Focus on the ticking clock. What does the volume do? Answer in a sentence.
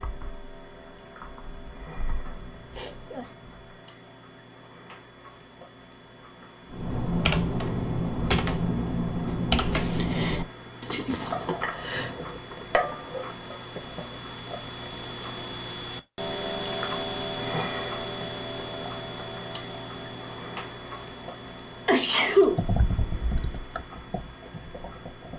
The volume of the ticking clock goes up, then down.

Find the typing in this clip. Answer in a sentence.
You can hear the typing from 0.0 to 3.8 s, from 6.7 to 13.3 s and from 22.4 to 25.3 s.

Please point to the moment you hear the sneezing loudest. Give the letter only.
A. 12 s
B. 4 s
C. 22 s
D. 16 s
C.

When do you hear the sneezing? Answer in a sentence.
The sneezing can be heard from 2.7 to 3.3 s, from 10.8 to 12.2 s and from 21.9 to 22.6 s.